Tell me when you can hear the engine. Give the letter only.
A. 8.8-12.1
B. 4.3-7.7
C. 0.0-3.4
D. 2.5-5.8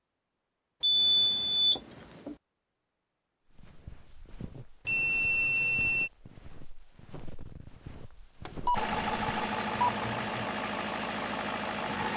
A.